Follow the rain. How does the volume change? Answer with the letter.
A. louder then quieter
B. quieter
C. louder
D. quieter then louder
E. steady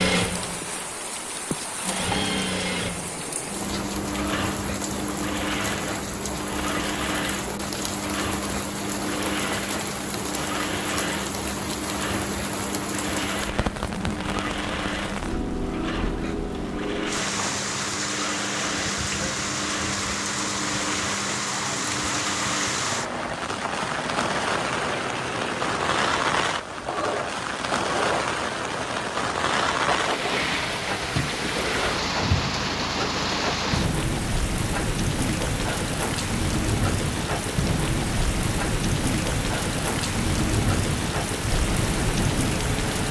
C.